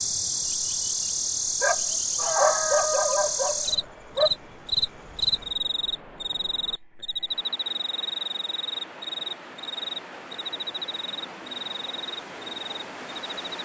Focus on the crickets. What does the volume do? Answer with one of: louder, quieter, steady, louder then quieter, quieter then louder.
quieter.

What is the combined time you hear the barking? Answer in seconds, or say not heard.
3 s.